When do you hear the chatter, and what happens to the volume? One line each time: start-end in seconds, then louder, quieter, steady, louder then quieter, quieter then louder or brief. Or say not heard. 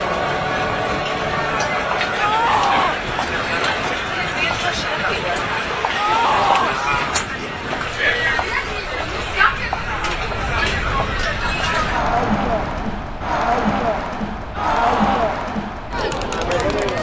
0.0-16.9 steady.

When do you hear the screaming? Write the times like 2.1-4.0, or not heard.
2.1-3.0, 6.0-6.8, 14.5-15.3.